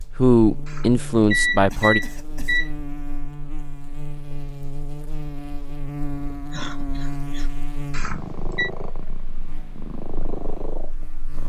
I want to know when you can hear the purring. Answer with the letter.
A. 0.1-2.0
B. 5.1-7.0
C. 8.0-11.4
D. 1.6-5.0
C.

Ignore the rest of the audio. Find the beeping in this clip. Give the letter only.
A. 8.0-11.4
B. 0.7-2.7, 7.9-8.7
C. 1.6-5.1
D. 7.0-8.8
B.